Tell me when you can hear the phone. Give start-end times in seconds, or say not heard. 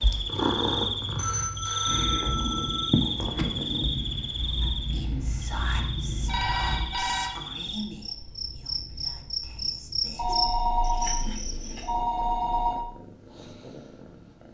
1.1-2.9, 6.2-7.3, 10.2-12.8.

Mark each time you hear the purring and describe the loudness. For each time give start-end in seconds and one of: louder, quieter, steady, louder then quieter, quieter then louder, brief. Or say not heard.
0.0-14.4 quieter then louder.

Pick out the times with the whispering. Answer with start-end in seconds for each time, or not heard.
4.6-10.3.